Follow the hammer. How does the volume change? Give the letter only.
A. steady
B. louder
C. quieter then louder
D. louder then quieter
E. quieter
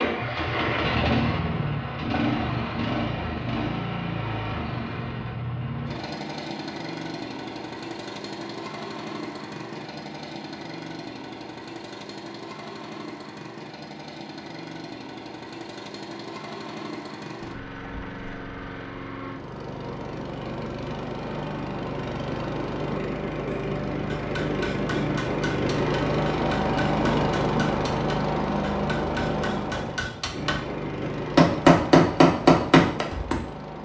B.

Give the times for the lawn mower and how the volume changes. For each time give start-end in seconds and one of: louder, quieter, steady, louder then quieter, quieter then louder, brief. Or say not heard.
0.0-33.7 quieter then louder.